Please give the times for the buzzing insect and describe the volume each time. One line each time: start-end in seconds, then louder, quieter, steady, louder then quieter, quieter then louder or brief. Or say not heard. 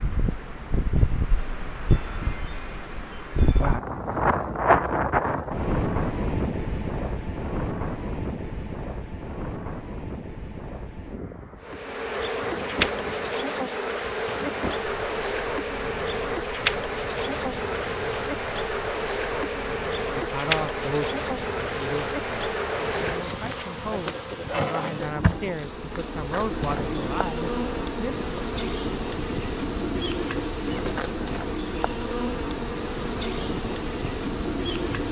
11.6-35.0 steady.